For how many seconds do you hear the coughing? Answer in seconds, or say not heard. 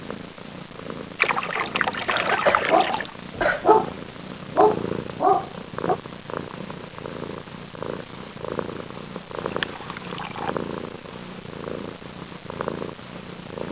2 s.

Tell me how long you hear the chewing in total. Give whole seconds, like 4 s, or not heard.
not heard.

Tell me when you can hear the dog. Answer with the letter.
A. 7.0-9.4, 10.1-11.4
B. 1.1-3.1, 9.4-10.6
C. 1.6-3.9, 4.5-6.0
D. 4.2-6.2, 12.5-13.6
C.